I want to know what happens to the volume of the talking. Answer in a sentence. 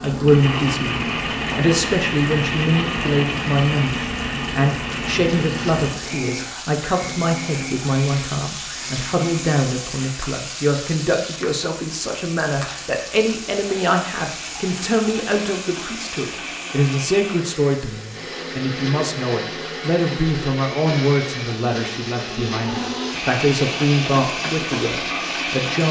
The volume of the talking stays about the same.